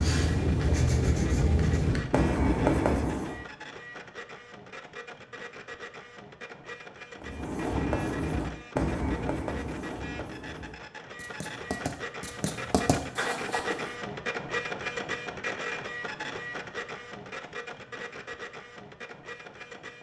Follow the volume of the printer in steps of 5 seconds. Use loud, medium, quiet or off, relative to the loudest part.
medium, medium, loud, loud.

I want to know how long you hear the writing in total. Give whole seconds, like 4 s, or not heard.
10 s.